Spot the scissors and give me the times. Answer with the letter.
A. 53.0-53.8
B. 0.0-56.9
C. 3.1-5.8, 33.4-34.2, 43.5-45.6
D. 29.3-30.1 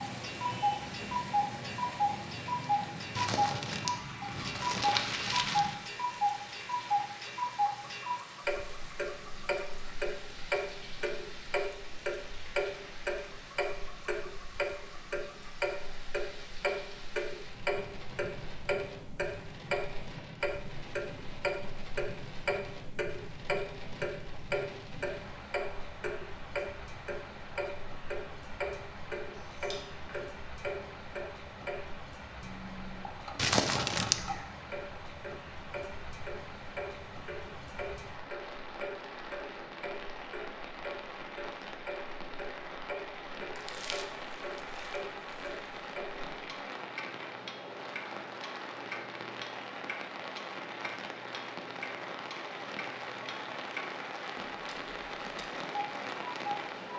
D.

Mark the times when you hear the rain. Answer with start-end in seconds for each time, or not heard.
0.0-56.9.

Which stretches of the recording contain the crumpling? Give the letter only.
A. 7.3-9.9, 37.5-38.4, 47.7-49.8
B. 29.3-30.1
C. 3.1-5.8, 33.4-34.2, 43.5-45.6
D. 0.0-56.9
C.